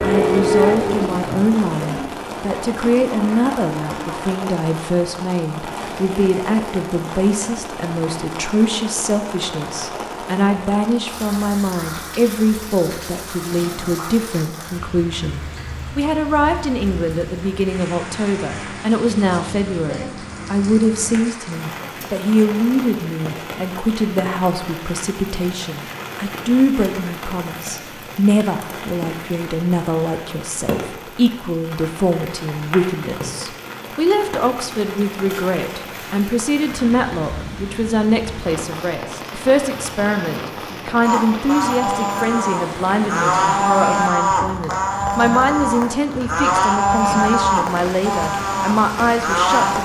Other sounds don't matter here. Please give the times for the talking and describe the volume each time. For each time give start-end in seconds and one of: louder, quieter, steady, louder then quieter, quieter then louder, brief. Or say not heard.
0.0-49.7 steady.